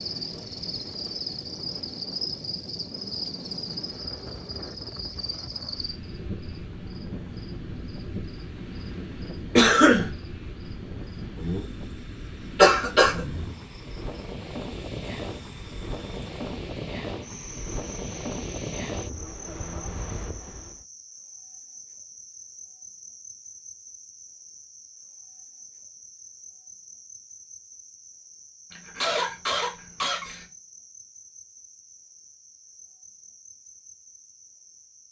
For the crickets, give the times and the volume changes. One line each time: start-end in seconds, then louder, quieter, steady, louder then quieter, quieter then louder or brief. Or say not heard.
0.0-35.0 quieter.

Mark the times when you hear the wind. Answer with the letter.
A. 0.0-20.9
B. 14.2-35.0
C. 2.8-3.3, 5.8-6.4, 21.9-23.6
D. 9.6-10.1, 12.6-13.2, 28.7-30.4
A.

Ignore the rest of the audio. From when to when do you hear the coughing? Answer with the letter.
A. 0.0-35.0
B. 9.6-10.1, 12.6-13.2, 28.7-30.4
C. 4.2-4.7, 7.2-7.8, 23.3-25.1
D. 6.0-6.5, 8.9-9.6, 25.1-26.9
B.